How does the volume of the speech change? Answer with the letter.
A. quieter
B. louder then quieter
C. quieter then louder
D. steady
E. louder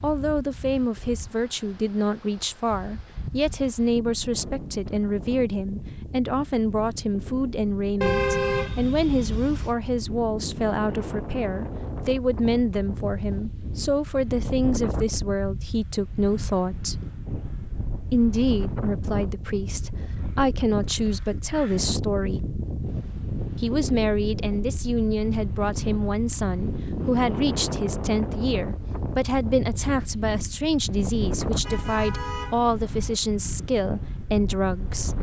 D.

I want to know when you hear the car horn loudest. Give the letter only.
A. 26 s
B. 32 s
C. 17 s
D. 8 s
D.